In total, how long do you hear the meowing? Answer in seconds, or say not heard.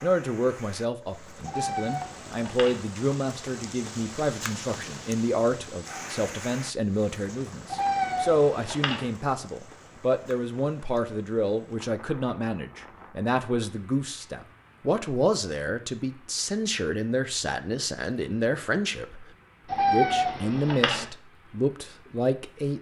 4 s.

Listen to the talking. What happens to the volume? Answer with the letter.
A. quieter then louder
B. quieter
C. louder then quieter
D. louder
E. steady
E.